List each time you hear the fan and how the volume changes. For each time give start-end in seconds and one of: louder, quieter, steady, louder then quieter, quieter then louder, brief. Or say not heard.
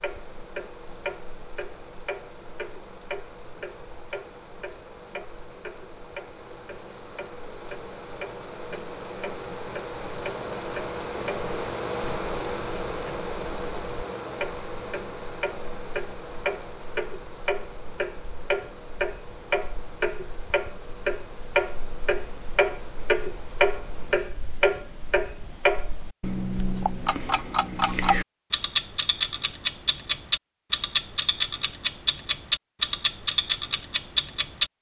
0.0-24.3 louder then quieter.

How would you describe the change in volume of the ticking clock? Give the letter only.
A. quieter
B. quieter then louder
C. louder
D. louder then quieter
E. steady
C.